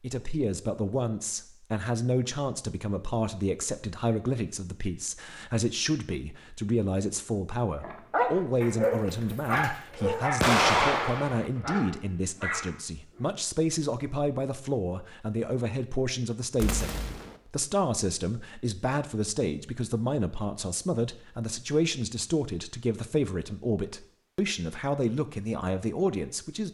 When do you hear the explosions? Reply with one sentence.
You can hear the explosions from 10.4 to 11.5 s and from 16.6 to 17.4 s.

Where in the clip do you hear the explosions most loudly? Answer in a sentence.
The loudest moment of the explosions is at 11 seconds.